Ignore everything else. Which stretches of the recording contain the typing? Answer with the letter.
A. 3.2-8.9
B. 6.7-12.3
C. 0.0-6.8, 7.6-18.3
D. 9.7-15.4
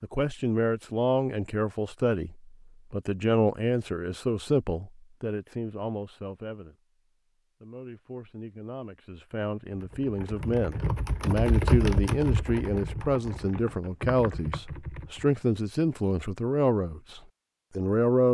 D.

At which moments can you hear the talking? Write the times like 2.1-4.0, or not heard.
0.0-6.8, 7.6-18.3.